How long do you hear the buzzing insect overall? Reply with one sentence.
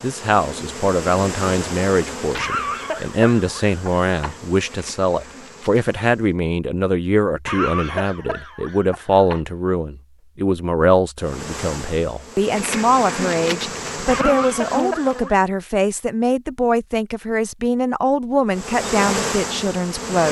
The buzzing insect can be heard for 12 seconds in total.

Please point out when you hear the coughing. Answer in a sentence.
You can hear the coughing from 2.4 to 4.3 s, from 7.5 to 9.4 s and from 14.1 to 15.4 s.